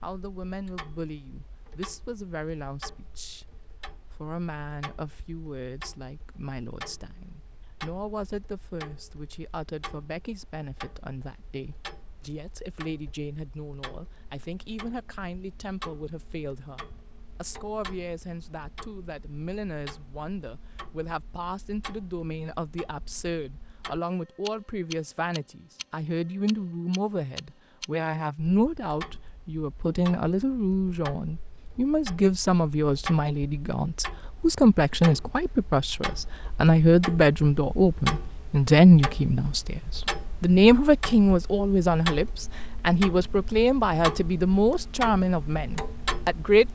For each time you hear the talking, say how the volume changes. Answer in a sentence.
You can hear the talking from 0.0 to 46.7 s, getting louder.